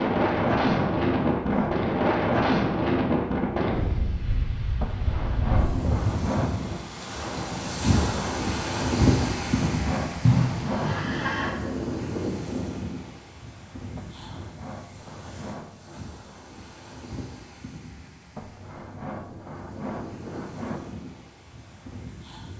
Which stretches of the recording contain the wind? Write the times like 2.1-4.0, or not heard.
0.0-22.5.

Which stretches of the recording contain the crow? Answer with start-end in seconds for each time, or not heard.
not heard.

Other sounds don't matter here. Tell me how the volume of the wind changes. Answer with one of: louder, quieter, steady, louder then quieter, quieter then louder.
quieter.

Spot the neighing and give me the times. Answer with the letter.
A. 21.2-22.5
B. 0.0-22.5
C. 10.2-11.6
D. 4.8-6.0
C.